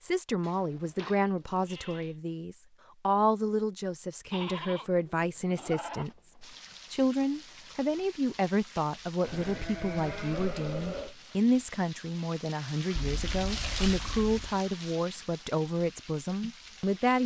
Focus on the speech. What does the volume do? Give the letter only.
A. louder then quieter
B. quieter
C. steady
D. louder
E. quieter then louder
C.